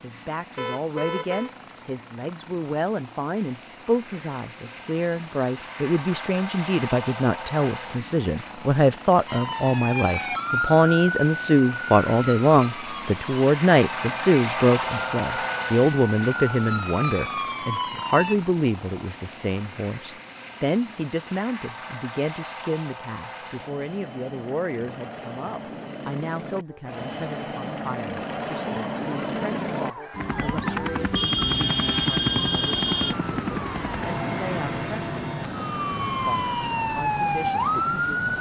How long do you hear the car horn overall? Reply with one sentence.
You can hear the car horn for 3 seconds altogether.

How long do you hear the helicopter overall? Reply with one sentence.
The helicopter can be heard for 38 seconds in total.